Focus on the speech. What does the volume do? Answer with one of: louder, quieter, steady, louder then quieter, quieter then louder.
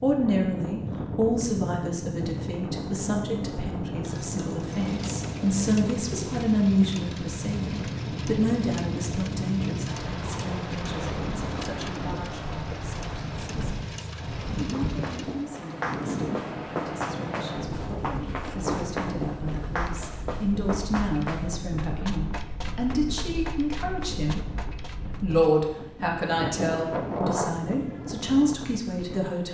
quieter then louder.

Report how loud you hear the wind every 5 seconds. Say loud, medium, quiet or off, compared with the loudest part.
loud, loud, loud, loud, medium, loud.